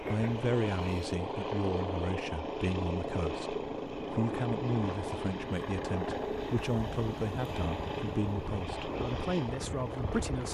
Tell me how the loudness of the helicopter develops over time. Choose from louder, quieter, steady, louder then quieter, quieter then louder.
steady.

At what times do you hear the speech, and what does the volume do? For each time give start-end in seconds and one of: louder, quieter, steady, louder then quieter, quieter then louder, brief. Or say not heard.
0.0-10.5 steady.